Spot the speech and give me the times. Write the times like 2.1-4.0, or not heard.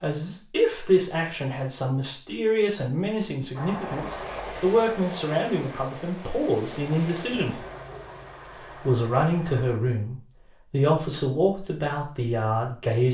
0.0-7.6, 8.8-13.1.